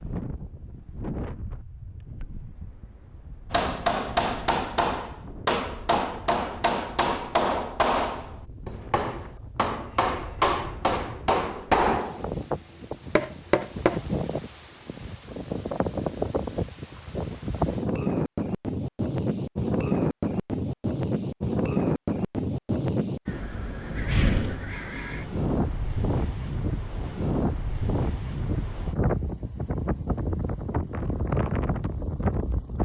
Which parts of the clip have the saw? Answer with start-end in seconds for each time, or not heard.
not heard.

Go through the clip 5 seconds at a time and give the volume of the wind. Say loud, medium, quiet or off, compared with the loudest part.
quiet, quiet, medium, loud, loud, loud, loud.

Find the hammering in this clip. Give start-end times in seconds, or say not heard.
3.5-14.1.